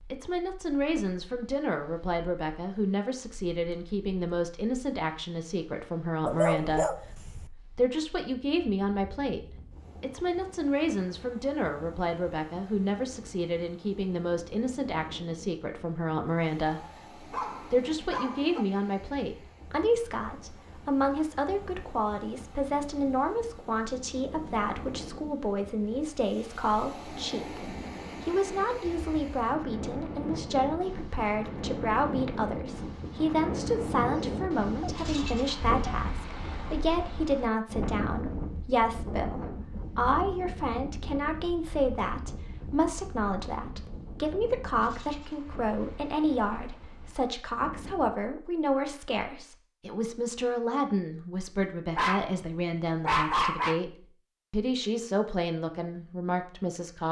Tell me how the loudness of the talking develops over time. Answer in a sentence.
The volume of the talking stays about the same.